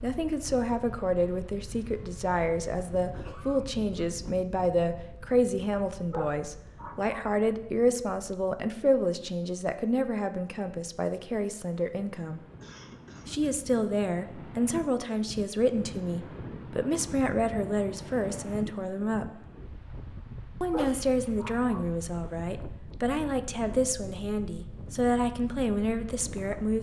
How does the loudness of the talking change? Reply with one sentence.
The loudness of the talking stays about the same.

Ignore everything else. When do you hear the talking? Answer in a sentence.
You can hear the talking from 0.0 to 12.4 s, from 13.2 to 19.2 s and from 20.6 to 26.7 s.